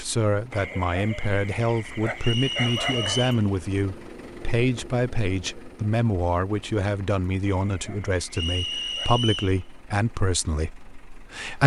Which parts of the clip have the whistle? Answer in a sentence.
You can hear the whistle from 2.2 to 3.5 s and from 8.3 to 9.6 s.